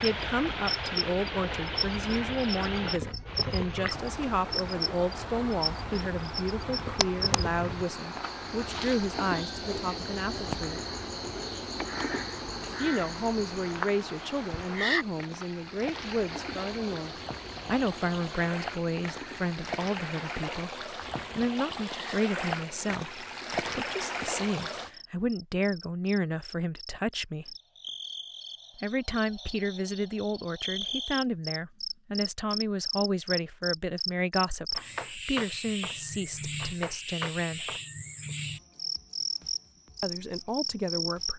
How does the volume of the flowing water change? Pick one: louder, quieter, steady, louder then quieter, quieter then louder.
quieter then louder.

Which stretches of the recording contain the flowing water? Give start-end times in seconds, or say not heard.
0.0-24.9.